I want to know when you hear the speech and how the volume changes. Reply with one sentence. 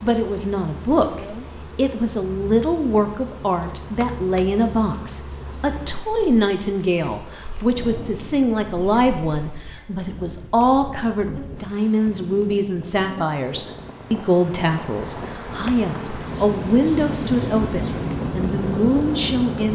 The speech can be heard from 0.0 to 19.7 s, at a steady volume.